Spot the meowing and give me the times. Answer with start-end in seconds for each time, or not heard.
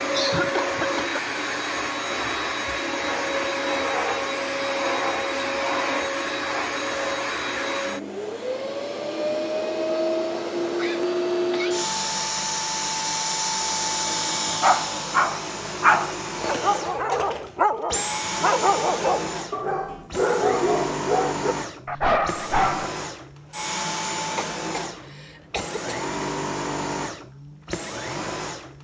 not heard.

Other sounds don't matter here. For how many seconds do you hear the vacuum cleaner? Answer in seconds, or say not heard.
29 s.